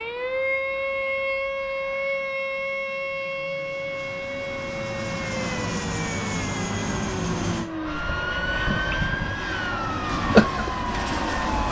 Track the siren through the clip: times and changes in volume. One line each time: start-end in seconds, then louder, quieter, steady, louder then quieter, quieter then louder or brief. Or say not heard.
0.0-11.6 quieter then louder.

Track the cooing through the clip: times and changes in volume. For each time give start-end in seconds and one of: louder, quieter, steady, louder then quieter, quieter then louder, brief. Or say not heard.
not heard.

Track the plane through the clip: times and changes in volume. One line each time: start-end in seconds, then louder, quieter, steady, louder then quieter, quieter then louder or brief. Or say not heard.
0.0-11.6 louder.